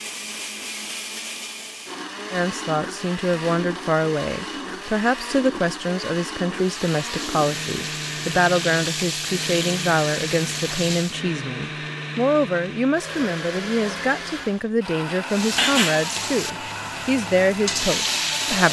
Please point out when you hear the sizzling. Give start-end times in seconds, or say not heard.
6.5-11.2, 15.2-18.6.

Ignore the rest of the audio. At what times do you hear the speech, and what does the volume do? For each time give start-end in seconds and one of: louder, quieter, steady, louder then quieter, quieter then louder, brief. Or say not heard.
2.3-18.6 steady.